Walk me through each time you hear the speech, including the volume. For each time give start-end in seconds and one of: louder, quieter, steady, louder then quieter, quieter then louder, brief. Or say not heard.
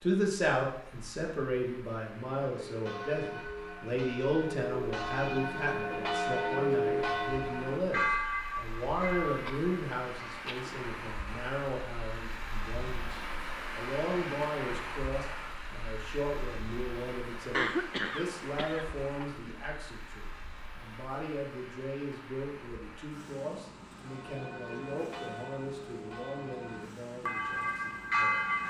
0.0-28.4 quieter.